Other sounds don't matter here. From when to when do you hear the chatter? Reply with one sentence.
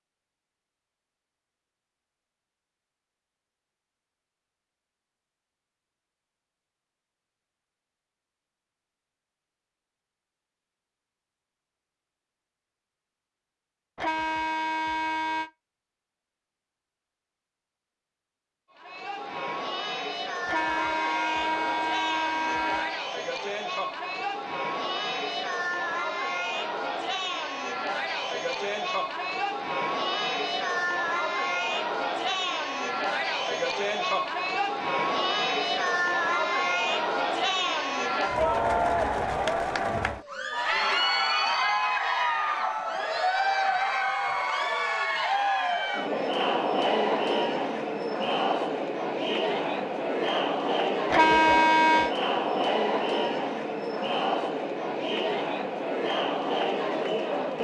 You can hear the chatter from 18.7 to 57.5 s.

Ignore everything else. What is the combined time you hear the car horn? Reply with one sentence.
You can hear the car horn for 5 seconds altogether.